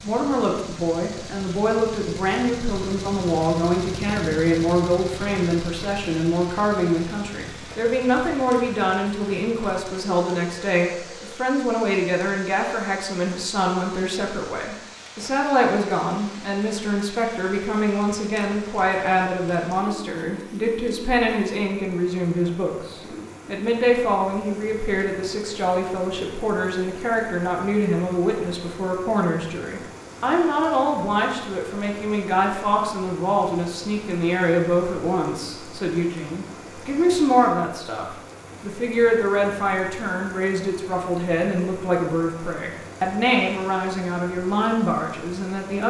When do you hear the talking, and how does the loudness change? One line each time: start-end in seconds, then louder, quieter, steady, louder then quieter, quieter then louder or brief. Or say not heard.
0.0-45.8 steady.